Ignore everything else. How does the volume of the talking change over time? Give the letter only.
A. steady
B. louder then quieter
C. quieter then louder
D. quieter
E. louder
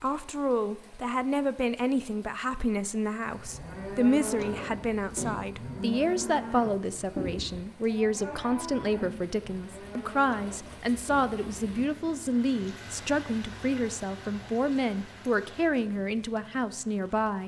A.